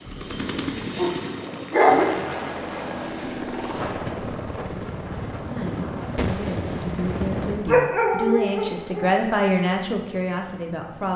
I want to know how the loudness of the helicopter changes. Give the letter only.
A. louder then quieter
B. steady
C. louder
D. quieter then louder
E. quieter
E.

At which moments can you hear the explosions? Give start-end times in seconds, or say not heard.
6.2-7.8.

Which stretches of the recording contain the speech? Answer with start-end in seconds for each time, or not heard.
5.3-11.1.